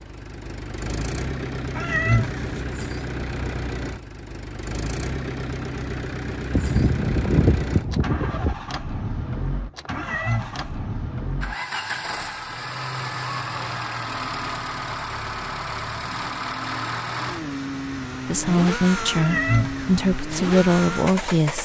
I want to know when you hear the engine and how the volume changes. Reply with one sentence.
The engine can be heard from 0.0 to 21.5 s, at a steady volume.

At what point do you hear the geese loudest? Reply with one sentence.
The loudest moment of the geese is at 7 seconds.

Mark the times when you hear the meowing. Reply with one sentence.
The meowing can be heard from 1.8 to 2.6 s, from 9.9 to 10.7 s and from 19.1 to 19.9 s.